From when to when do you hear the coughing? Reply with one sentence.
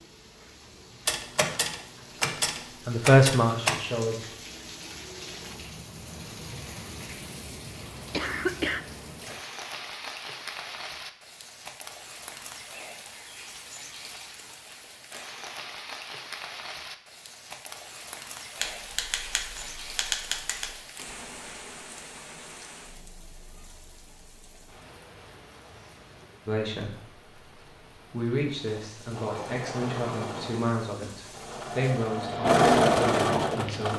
You can hear the coughing from 8.1 to 8.8 s.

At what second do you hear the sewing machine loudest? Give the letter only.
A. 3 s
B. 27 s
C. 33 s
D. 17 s
C.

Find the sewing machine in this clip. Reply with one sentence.
The sewing machine can be heard from 28.6 to 33.9 s.